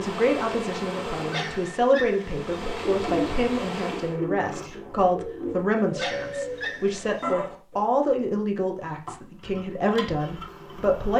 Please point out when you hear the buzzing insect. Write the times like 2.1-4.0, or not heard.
0.0-4.2, 8.8-11.1.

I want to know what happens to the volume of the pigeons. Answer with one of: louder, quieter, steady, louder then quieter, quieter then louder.
steady.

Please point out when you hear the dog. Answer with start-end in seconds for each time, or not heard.
1.3-2.4, 6.0-7.2.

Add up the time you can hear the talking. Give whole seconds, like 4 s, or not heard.
11 s.